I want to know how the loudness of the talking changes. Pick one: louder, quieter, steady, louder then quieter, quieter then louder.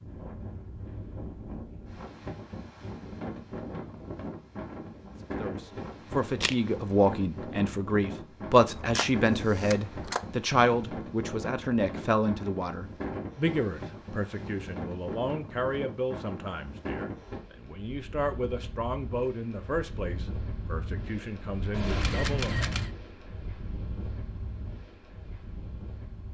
quieter.